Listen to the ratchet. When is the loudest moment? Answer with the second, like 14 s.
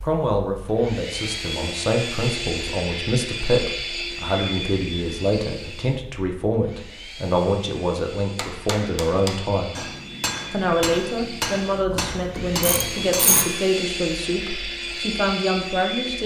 13 s.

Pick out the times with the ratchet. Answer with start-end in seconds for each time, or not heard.
11.9-13.4.